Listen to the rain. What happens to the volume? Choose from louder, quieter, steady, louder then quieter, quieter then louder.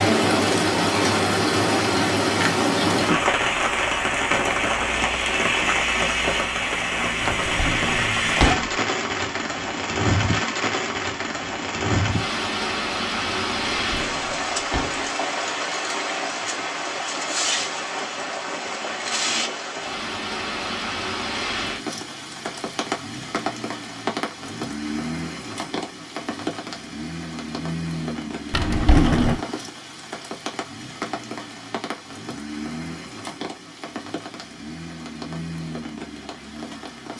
quieter.